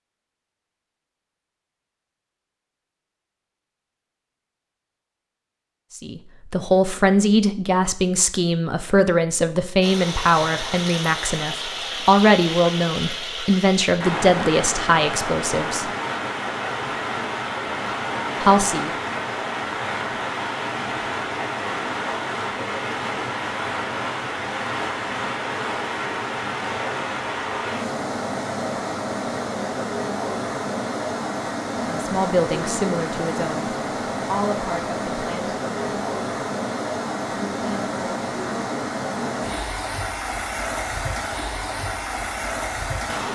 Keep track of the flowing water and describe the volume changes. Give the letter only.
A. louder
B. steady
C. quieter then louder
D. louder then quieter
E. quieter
B.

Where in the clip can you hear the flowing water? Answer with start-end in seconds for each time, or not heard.
9.8-43.3.